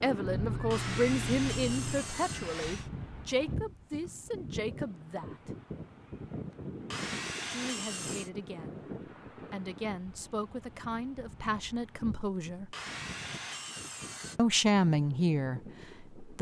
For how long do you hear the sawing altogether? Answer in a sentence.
The sawing can be heard for 5 seconds in total.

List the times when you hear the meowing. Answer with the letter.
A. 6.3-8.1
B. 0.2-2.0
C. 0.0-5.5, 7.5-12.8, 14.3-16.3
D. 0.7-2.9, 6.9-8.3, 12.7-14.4
B.